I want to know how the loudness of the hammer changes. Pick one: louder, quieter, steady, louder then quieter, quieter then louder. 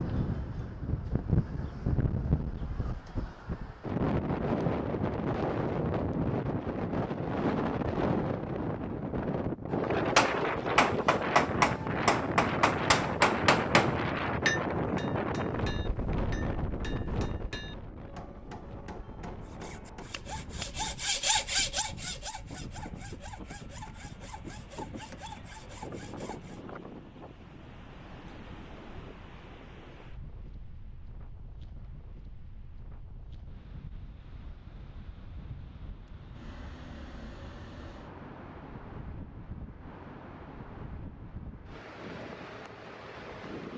quieter.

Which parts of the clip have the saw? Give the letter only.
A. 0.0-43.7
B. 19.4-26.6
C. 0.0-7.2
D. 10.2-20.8
B.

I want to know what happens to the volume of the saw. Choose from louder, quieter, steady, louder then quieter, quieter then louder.
louder then quieter.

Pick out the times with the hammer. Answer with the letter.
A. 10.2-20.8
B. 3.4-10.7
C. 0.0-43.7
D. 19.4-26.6
A.